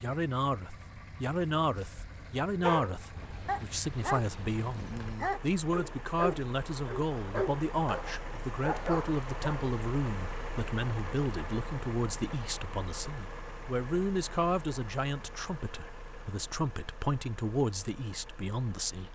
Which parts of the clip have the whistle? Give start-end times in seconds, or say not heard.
not heard.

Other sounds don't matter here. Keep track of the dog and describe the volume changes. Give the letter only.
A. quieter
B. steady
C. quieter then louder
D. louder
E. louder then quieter
B.